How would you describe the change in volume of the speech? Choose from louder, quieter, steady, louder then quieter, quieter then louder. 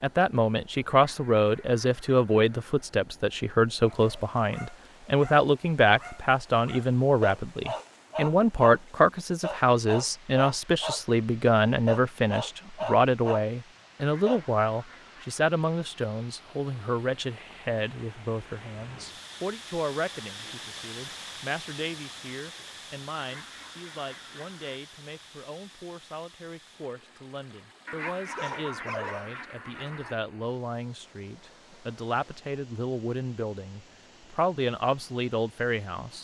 quieter then louder.